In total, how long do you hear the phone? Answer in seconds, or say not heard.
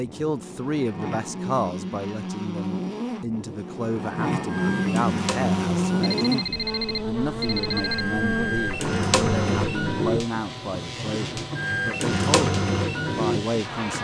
2 s.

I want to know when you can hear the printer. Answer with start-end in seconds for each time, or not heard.
4.5-13.9.